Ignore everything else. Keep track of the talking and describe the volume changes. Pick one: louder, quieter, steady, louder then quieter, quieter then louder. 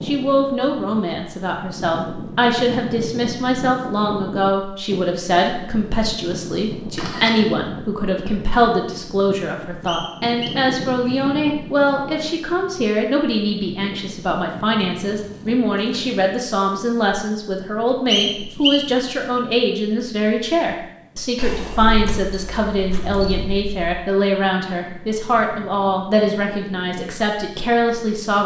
steady.